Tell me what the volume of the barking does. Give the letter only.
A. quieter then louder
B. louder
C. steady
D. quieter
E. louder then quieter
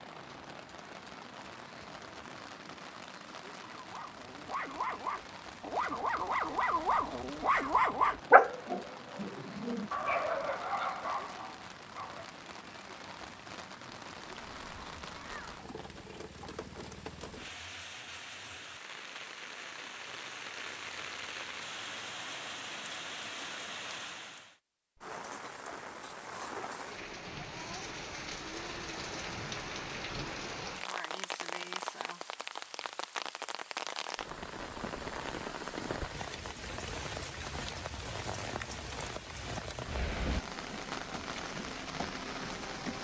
E.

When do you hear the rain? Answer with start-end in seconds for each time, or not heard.
0.0-42.9.